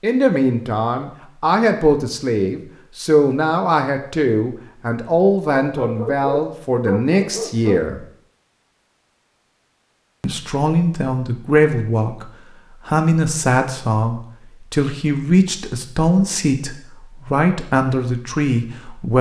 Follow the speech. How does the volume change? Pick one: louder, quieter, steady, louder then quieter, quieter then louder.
steady.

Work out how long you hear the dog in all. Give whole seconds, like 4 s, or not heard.
2 s.